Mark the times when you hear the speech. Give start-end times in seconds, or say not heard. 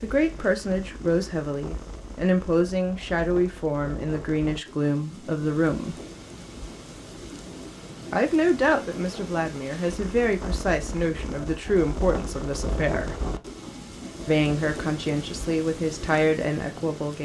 0.0-6.0, 8.1-13.2, 14.2-17.2.